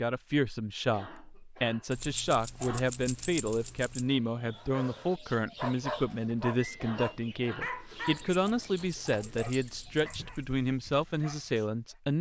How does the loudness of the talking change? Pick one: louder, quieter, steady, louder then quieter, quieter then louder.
steady.